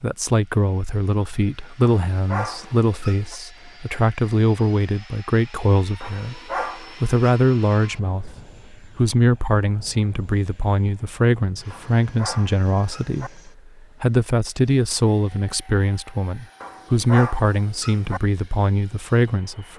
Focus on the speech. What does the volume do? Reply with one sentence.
The loudness of the speech stays about the same.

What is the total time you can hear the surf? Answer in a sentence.
You can't hear the surf here.